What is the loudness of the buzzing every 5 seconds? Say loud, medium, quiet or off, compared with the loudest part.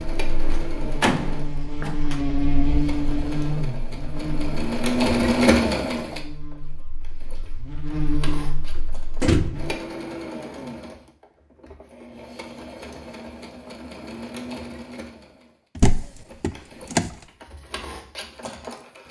loud, medium, off, off.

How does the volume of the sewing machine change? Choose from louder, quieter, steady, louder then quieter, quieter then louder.
louder then quieter.